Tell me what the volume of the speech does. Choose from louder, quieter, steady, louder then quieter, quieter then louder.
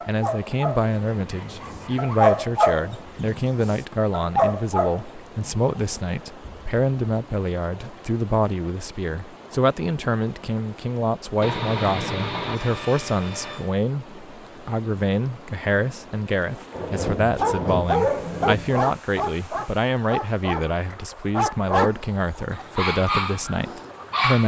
steady.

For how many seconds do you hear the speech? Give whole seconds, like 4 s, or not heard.
24 s.